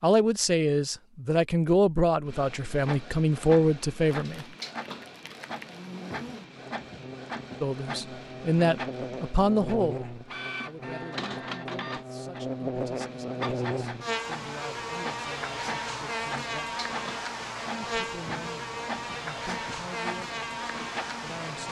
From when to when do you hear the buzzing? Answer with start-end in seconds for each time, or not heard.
5.7-21.6.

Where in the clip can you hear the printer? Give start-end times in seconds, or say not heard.
2.2-21.6.